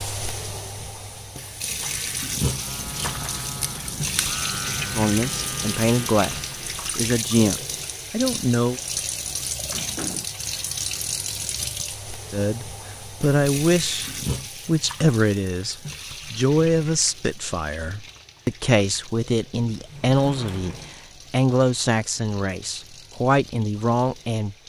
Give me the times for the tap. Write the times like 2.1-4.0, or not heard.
0.0-24.6.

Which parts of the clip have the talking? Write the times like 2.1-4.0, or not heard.
5.0-8.8, 12.3-24.6.